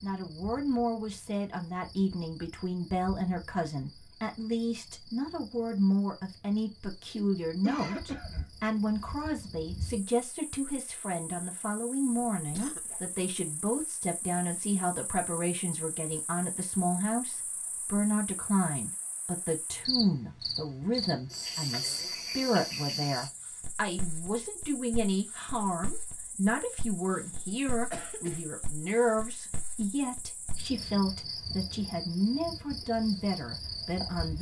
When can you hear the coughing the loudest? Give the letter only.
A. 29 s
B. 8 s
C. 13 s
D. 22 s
B.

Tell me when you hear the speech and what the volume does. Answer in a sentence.
You can hear the speech from 0.0 to 34.3 s, at a steady volume.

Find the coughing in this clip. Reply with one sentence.
You can hear the coughing from 7.6 to 8.4 s, from 12.3 to 13.2 s and from 27.9 to 28.4 s.